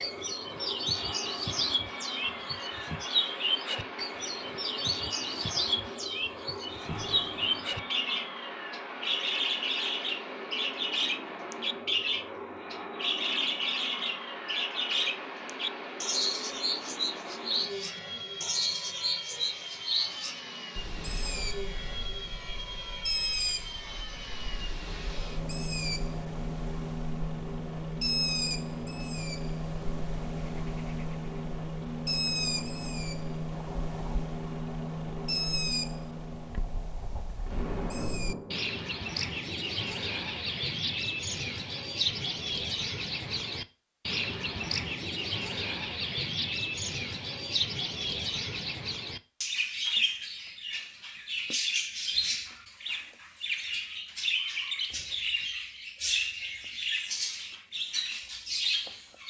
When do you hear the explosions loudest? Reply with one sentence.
The loudest moment of the explosions is at 38 seconds.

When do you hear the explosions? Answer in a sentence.
You can hear the explosions from 6.9 to 7.7 s and from 37.5 to 39.0 s.